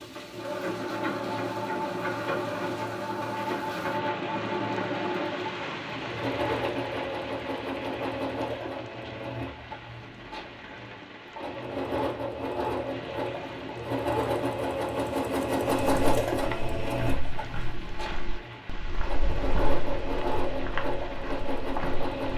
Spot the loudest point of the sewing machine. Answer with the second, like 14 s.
16 s.